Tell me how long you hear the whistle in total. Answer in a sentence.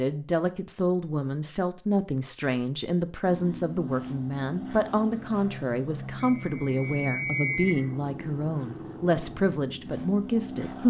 You can hear the whistle for 2 seconds altogether.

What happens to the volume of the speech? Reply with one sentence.
The volume of the speech stays about the same.